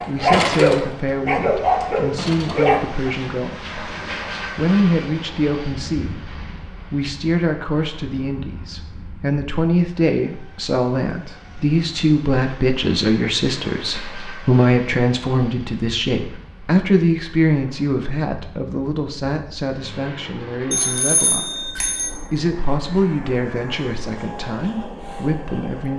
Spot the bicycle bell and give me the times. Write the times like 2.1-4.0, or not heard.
20.7-22.1.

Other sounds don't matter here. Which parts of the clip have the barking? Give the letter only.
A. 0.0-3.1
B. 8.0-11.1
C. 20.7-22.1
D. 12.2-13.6
A.